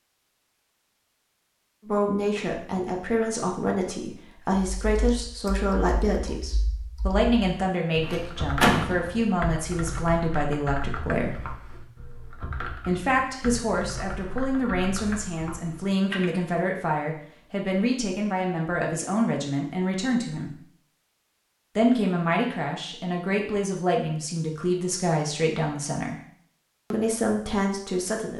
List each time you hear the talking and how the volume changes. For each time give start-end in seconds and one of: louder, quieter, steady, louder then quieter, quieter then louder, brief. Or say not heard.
1.9-11.4 steady
12.8-20.6 steady
21.8-26.2 steady
26.9-28.3 brief.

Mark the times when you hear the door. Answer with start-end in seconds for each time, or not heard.
8.0-9.1.